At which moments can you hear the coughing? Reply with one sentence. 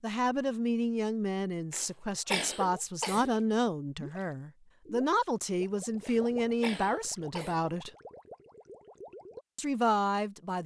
You can hear the coughing from 1.7 to 3.2 s and from 6.0 to 7.6 s.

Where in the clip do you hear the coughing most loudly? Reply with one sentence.
The volume of the coughing peaks at 2 seconds.